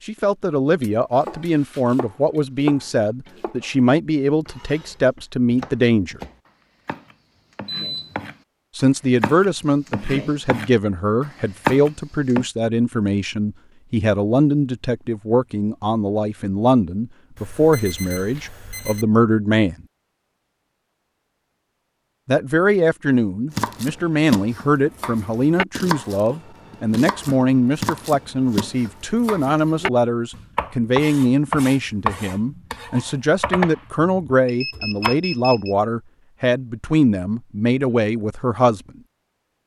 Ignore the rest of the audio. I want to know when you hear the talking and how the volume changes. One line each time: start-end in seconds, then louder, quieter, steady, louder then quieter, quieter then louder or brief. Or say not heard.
0.1-6.2 steady
8.8-19.8 steady
22.2-38.8 steady.